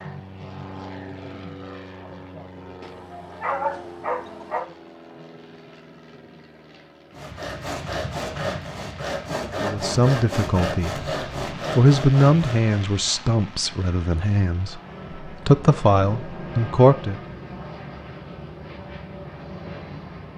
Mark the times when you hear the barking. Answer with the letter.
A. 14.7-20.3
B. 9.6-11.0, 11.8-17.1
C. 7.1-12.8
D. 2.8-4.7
D.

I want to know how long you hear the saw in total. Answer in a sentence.
You can hear the saw for 6 seconds altogether.